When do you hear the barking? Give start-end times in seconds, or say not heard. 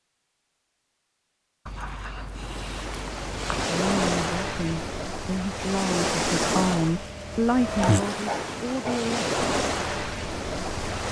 1.6-3.6, 7.7-9.2.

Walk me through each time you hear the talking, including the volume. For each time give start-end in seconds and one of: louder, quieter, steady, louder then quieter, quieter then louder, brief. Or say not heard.
3.6-9.2 louder then quieter.